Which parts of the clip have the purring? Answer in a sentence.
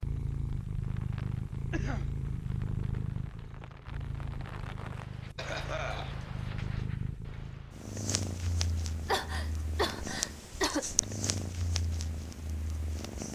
The purring can be heard from 0.0 to 13.3 s.